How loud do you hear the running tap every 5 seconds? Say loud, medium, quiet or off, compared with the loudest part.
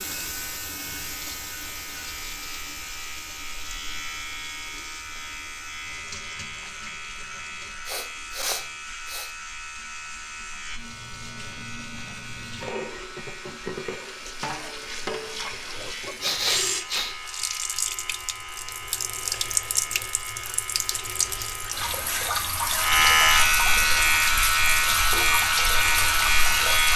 medium, quiet, medium, loud, loud, loud.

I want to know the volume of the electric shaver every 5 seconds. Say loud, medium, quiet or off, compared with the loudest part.
quiet, quiet, quiet, quiet, loud, loud.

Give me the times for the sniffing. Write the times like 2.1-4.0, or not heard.
7.8-9.3, 16.2-17.1.